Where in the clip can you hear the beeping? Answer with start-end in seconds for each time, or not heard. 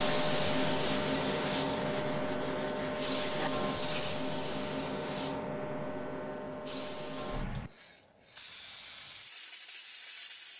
not heard.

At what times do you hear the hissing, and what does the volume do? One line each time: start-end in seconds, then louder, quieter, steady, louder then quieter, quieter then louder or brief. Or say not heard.
0.0-10.5 quieter.